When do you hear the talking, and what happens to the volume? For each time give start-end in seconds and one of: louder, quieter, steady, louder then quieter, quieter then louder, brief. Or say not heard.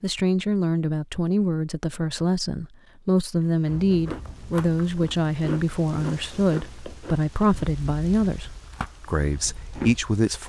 0.0-10.4 steady.